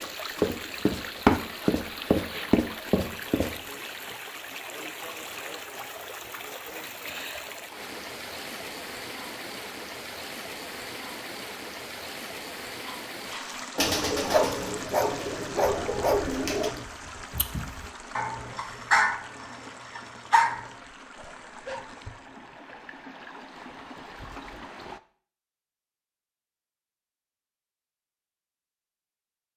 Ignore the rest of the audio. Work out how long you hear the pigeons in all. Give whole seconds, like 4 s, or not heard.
3 s.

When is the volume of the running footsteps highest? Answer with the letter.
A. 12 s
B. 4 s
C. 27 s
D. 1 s
D.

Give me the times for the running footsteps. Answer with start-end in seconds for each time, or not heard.
0.0-3.5.